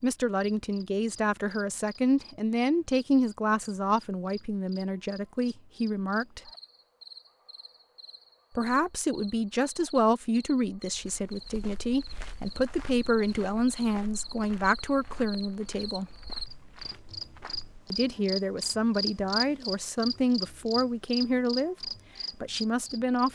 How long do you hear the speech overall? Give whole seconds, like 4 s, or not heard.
19 s.